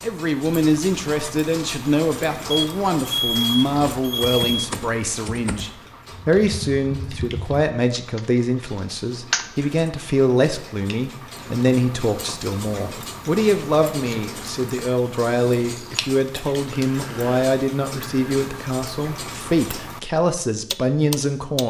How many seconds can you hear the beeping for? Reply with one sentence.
The beeping can be heard for 2 seconds in total.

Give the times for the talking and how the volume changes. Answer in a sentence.
The talking can be heard from 0.0 to 21.6 s, at a steady volume.